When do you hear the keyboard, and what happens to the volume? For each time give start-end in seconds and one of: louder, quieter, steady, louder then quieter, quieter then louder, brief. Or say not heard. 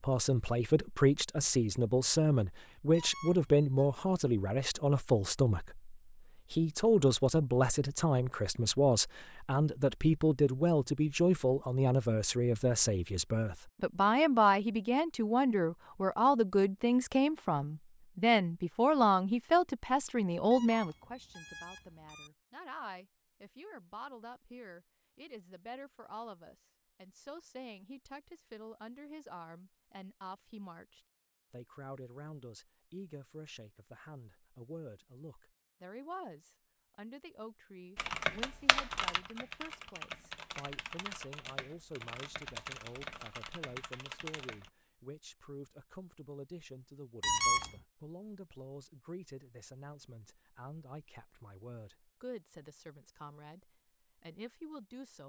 38.0-44.7 quieter.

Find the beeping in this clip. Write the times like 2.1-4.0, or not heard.
2.9-3.9, 20.5-22.3, 47.2-47.7.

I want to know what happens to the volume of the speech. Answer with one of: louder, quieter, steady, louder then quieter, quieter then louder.
quieter.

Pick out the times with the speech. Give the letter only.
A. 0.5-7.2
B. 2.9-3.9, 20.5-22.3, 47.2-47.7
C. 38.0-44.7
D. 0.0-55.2
D.